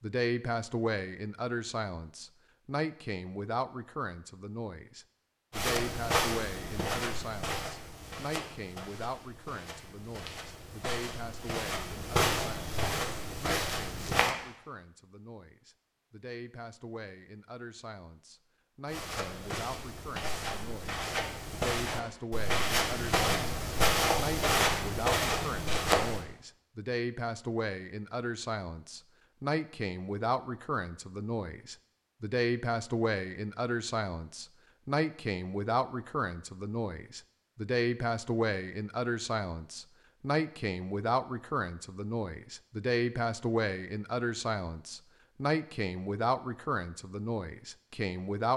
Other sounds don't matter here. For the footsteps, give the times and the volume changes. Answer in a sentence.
The footsteps can be heard from 5.5 to 14.3 s, getting quieter then louder; and from 18.9 to 26.2 s, getting louder.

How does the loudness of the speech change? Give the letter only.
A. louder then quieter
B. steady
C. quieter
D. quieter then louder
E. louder
D.